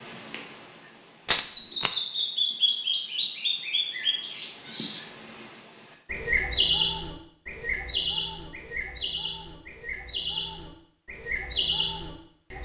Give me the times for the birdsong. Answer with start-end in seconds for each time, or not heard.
0.0-12.6.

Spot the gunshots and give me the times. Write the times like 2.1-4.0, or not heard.
1.2-1.9.